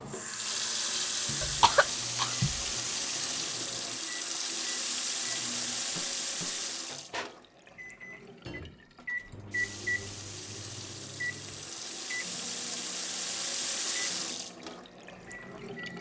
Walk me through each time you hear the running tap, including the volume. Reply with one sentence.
You can hear the running tap from 0.1 to 15.9 s, getting quieter then louder.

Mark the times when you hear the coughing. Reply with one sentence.
You can hear the coughing from 1.4 to 2.6 s.